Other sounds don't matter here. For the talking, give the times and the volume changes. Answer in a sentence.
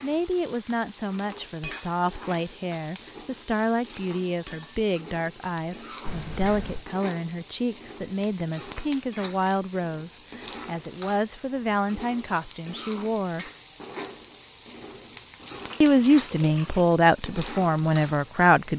The talking can be heard from 0.0 to 13.5 s, at a steady volume; and briefly from 15.8 to 18.7 s.